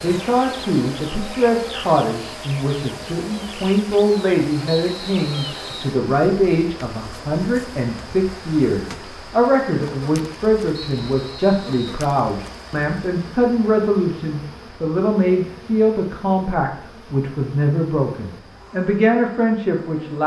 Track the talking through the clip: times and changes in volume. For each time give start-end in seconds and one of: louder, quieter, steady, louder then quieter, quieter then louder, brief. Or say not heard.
0.0-20.2 steady.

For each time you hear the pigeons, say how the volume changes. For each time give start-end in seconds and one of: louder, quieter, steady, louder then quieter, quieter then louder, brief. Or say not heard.
not heard.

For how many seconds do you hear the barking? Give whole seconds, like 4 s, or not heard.
not heard.